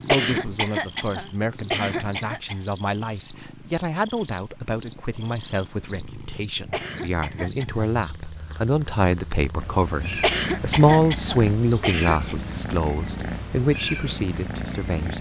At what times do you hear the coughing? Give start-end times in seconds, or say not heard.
0.1-2.5, 6.7-7.8, 10.2-12.3.